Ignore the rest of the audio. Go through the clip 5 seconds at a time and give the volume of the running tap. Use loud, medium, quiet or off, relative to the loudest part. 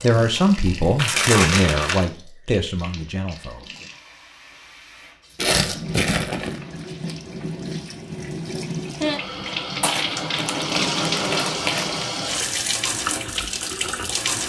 quiet, medium, loud.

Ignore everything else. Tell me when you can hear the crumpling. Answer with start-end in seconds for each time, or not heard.
0.9-2.0, 5.3-6.6, 9.8-12.1.